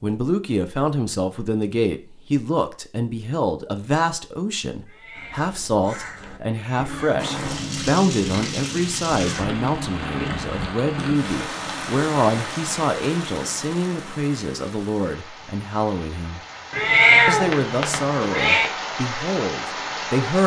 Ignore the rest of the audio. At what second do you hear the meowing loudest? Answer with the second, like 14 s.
17 s.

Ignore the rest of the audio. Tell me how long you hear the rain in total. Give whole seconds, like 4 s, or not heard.
13 s.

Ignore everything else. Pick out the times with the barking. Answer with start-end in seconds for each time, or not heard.
not heard.